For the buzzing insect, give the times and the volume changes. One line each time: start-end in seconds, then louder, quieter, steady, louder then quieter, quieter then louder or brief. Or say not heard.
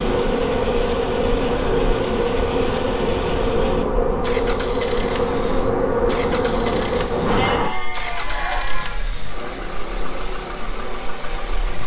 0.0-11.8 quieter.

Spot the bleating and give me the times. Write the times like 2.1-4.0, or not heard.
7.3-9.1.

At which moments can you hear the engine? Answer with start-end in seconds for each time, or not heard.
0.0-11.8.